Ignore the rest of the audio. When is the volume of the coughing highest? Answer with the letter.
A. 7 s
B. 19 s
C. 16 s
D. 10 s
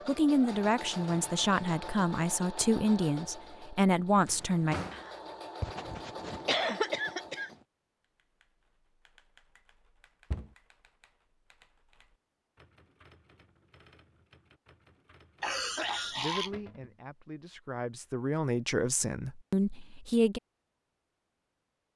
A.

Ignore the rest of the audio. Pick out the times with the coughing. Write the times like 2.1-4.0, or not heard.
4.9-7.5, 15.4-16.6.